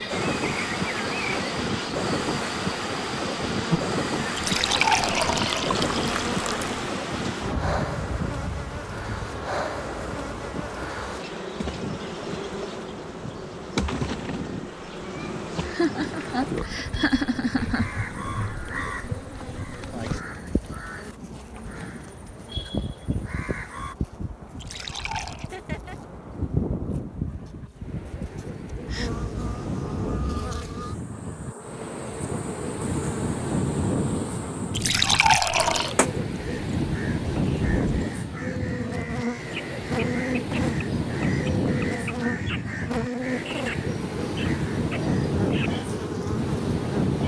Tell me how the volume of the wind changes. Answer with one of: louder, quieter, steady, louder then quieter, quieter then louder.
quieter then louder.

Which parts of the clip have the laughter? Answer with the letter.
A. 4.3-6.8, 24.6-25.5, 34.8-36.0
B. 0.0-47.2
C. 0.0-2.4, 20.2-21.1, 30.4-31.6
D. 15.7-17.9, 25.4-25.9
D.